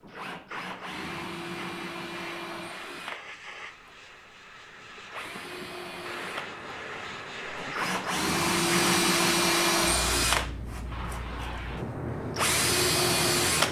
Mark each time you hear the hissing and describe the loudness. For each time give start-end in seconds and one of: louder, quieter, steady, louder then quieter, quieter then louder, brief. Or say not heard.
0.0-13.6 louder.